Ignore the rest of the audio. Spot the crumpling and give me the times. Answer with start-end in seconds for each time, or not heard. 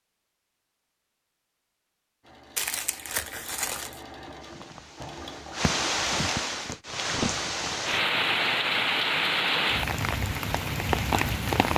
2.5-4.0.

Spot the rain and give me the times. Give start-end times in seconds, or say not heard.
4.4-11.7.